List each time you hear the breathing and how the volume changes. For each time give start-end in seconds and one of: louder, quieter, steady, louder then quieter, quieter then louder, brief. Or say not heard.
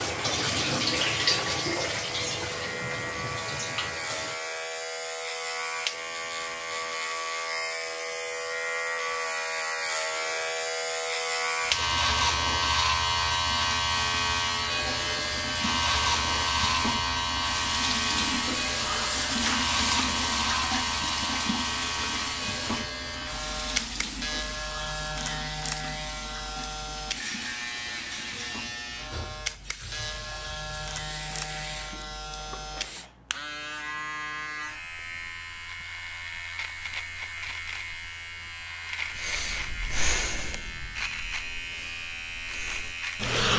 39.1-43.5 quieter then louder.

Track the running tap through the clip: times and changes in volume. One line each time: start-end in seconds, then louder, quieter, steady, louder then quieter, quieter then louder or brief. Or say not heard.
0.0-4.4 quieter
11.6-33.1 louder then quieter.